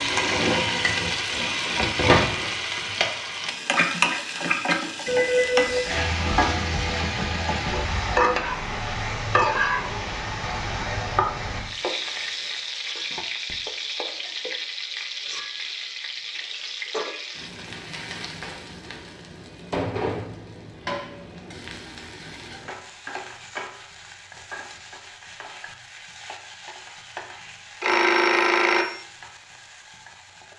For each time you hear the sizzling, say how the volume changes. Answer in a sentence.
You can hear the sizzling from 0.0 to 30.5 s, getting quieter.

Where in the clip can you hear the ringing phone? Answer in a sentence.
The ringing phone can be heard from 5.0 to 6.5 s and from 27.8 to 29.0 s.